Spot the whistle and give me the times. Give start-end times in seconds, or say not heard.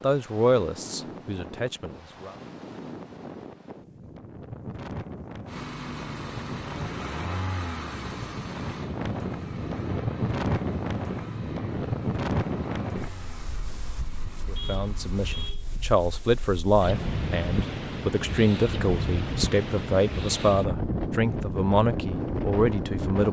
not heard.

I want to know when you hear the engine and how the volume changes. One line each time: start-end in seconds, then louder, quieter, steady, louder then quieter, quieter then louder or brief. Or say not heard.
5.5-15.6 quieter.